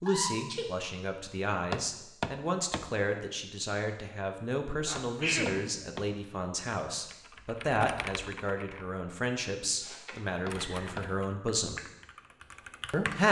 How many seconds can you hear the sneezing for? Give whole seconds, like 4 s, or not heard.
3 s.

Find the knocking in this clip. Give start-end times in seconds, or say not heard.
1.7-2.9, 5.0-6.1, 10.4-11.1.